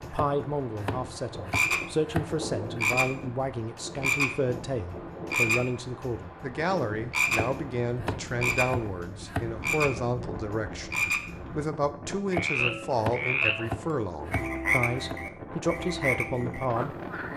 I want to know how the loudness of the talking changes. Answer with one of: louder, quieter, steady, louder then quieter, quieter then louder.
steady.